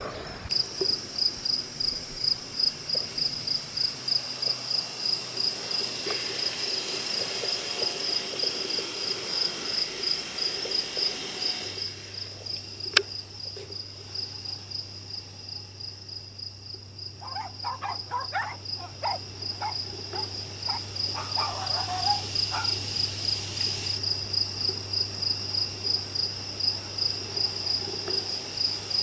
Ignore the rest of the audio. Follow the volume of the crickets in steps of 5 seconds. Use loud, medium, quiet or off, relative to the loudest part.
loud, loud, loud, medium, loud, loud.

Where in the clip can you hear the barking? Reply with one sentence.
The barking can be heard from 17.2 to 22.8 s.